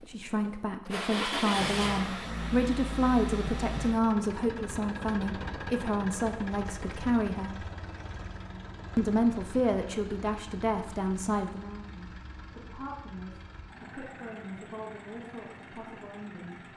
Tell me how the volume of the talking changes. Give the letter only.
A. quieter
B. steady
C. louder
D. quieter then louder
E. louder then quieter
A.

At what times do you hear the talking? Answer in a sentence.
You can hear the talking from 0.0 to 7.6 s and from 8.9 to 16.6 s.